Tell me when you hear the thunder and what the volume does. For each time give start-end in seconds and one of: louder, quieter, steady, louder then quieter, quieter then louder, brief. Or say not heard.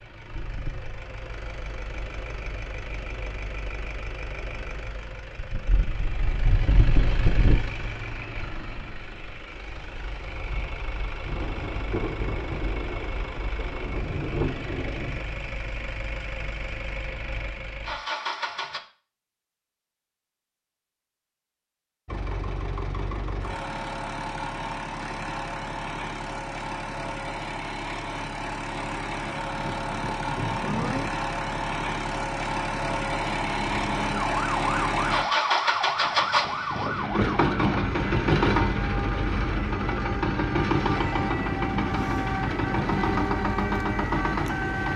11.2-15.4 quieter then louder
29.6-31.1 brief.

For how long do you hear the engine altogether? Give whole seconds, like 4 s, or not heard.
42 s.